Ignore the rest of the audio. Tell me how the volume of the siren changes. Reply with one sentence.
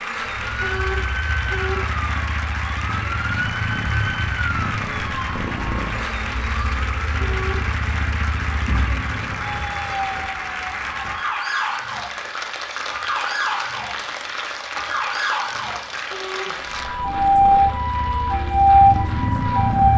The loudness of the siren goes up.